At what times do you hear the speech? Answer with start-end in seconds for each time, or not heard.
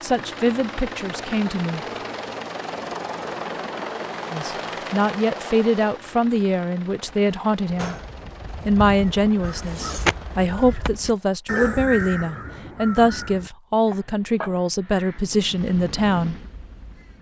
0.0-1.8, 4.3-8.0, 8.7-16.4.